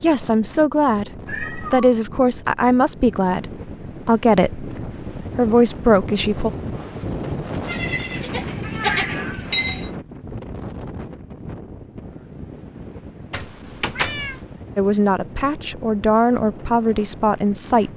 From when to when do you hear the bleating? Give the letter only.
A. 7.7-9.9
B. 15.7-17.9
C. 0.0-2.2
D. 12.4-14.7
A.